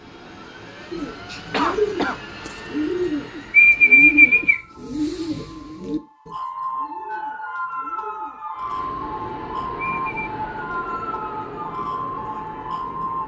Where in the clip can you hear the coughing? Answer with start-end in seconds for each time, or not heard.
1.2-2.4.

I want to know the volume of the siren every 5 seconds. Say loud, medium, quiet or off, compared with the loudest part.
quiet, loud, loud.